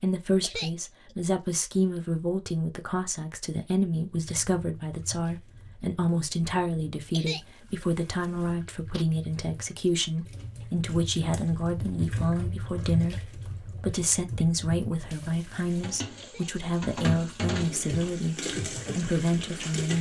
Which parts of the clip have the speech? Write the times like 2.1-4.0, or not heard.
0.0-19.9.